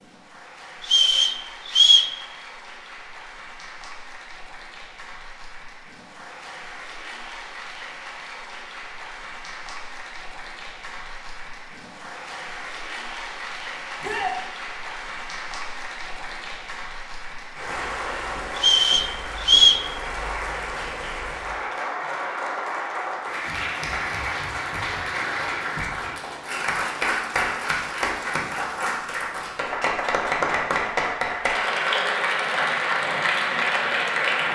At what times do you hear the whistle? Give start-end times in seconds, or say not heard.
0.8-2.1, 18.6-19.9.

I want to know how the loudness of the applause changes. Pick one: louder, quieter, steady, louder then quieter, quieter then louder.
louder.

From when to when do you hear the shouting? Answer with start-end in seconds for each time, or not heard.
14.0-14.4.